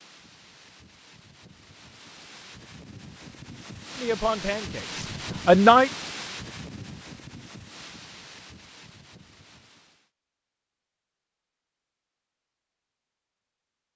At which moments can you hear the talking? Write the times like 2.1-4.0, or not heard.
4.0-5.9.